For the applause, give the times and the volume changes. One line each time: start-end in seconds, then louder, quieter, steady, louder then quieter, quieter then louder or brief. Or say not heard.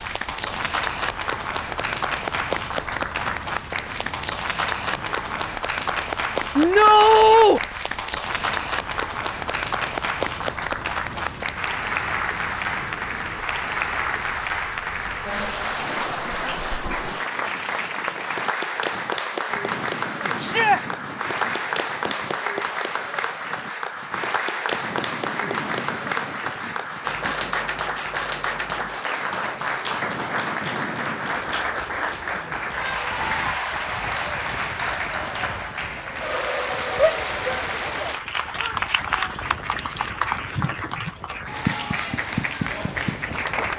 0.0-43.7 steady.